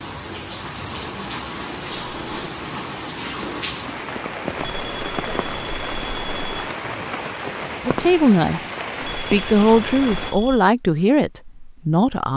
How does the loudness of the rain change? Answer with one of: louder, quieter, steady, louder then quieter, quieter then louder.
steady.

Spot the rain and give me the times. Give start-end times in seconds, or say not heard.
0.0-10.3.